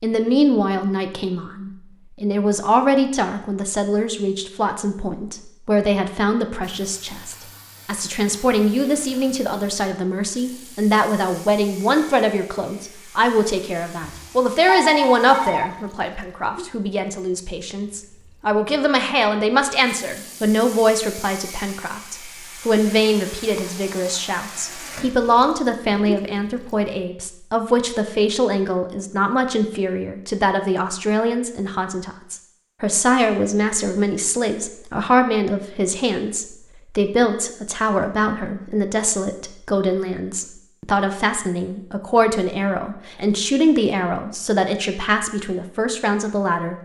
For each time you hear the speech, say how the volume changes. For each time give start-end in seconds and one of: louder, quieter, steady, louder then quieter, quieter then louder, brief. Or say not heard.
0.0-46.8 steady.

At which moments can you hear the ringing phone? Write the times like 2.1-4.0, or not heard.
14.0-15.7.